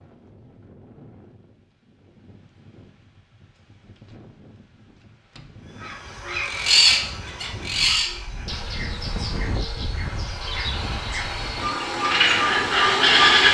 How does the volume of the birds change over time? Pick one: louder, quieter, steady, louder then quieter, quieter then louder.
quieter then louder.